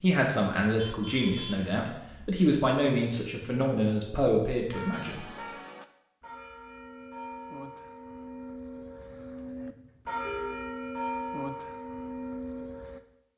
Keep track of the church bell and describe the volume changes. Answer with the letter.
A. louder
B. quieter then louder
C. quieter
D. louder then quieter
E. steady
A.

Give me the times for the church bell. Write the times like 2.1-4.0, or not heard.
4.9-13.0.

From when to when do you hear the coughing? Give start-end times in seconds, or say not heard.
not heard.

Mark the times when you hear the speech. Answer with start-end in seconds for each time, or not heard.
0.0-5.2.